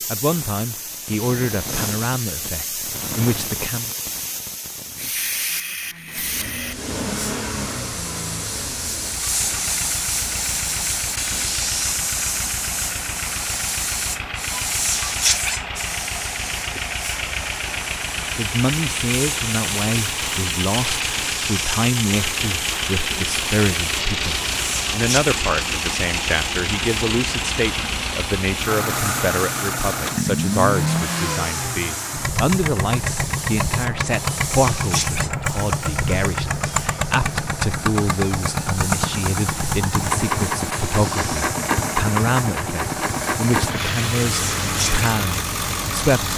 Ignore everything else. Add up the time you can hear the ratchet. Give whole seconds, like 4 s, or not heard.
not heard.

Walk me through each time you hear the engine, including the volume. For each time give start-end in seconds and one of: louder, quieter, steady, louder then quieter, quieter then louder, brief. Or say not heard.
6.1-46.3 louder.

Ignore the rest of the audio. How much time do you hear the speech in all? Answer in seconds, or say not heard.
32 s.